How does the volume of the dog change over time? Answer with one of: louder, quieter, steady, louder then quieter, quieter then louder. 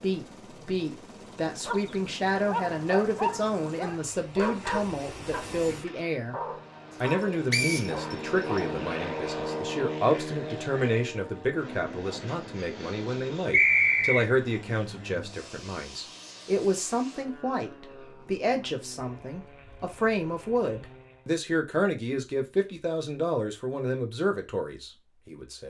quieter.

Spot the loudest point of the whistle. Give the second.
14 s.